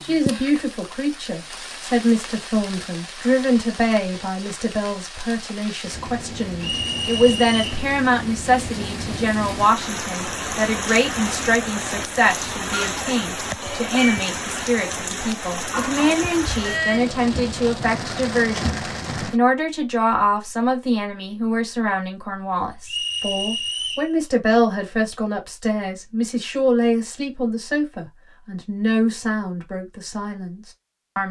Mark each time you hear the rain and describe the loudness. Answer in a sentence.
The rain can be heard from 0.0 to 19.4 s, getting louder.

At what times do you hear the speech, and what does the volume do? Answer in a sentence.
You can hear the speech from 0.0 to 31.2 s, at a steady volume.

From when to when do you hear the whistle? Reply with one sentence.
The whistle can be heard from 6.6 to 7.8 s and from 22.9 to 24.1 s.